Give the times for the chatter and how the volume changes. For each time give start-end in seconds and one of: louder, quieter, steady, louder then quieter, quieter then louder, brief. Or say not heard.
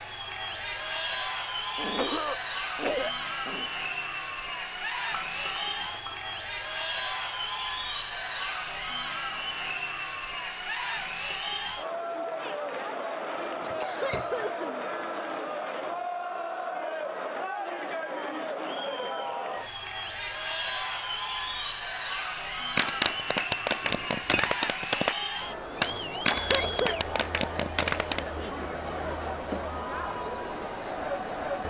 0.0-31.6 steady.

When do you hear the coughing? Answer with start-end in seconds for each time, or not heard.
1.8-3.6, 13.4-15.2, 26.1-26.9.